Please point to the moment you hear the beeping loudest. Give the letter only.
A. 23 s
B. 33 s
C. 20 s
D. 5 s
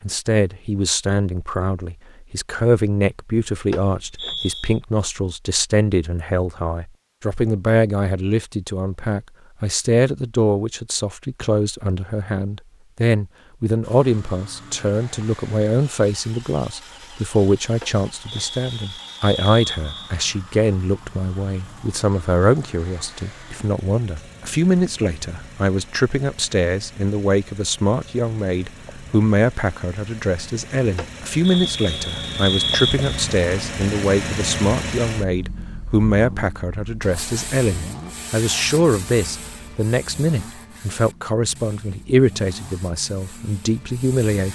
B.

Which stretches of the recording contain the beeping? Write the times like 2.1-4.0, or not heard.
3.7-4.8, 17.8-20.1, 30.9-33.0.